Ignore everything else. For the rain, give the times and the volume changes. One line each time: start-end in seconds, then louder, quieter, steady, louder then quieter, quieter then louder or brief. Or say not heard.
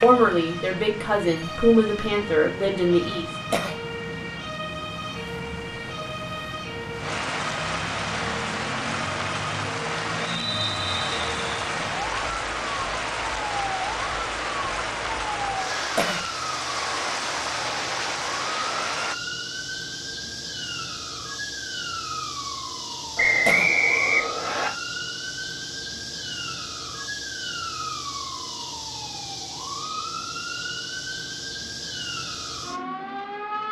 0.2-19.1 louder.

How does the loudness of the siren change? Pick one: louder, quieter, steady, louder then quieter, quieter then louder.
steady.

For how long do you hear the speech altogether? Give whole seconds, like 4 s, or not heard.
3 s.